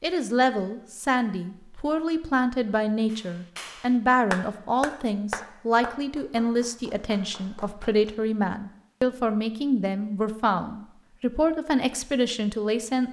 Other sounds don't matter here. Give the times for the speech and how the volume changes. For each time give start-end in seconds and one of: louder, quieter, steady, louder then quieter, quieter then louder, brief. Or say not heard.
0.0-13.0 steady.